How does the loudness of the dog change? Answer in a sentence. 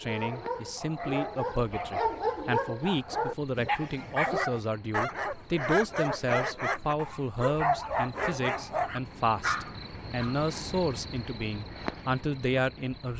The loudness of the dog stays about the same.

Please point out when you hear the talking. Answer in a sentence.
The talking can be heard from 0.0 to 13.1 s.